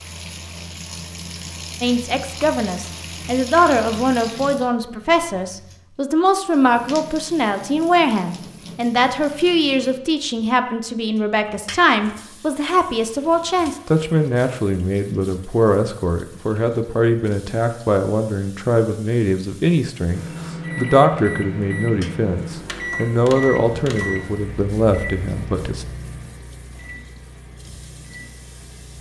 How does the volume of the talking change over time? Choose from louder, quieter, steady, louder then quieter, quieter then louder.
steady.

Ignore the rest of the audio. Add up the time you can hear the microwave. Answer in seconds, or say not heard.
9 s.